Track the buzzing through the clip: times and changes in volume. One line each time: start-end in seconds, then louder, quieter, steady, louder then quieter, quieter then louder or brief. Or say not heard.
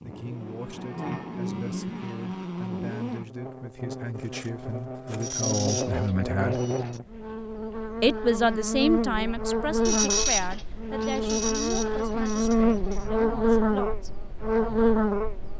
0.0-15.5 louder.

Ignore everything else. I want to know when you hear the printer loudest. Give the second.
10 s.